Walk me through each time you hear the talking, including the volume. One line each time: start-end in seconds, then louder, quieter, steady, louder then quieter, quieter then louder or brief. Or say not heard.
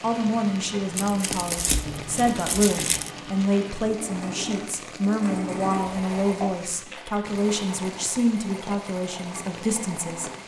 0.0-10.3 steady.